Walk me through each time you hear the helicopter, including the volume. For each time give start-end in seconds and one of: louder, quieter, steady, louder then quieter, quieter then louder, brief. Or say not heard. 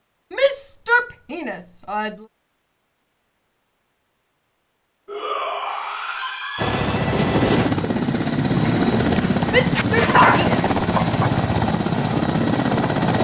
6.5-13.1 steady.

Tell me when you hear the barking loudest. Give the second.
10 s.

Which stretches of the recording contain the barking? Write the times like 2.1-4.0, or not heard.
8.5-11.3.